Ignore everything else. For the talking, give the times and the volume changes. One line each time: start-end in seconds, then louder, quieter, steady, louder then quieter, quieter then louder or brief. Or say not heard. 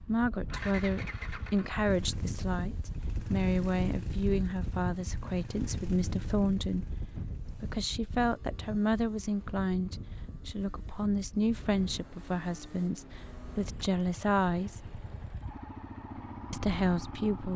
0.0-14.9 steady
16.5-17.5 brief.